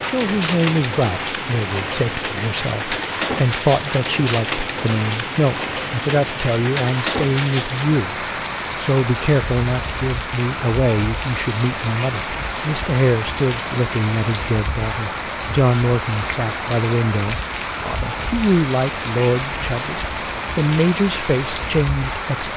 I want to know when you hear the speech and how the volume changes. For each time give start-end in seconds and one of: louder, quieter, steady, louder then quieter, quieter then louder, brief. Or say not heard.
0.1-22.5 steady.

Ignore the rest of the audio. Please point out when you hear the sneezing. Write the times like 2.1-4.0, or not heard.
not heard.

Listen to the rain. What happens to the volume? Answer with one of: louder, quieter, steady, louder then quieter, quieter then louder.
steady.